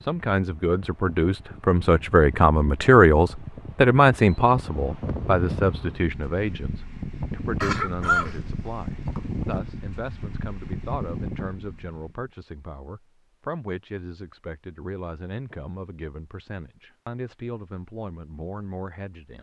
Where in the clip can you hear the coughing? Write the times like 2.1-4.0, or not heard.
7.6-9.2.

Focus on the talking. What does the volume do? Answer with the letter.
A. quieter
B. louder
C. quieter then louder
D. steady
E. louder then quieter
A.